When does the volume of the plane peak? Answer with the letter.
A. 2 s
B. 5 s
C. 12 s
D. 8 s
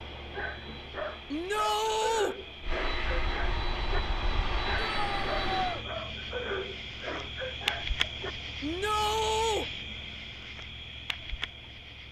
B.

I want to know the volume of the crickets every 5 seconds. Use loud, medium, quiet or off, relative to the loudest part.
medium, loud, medium.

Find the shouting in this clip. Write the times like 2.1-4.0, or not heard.
1.3-2.4, 4.8-5.8, 8.6-9.7.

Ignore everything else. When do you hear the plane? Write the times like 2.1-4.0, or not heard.
0.0-5.8.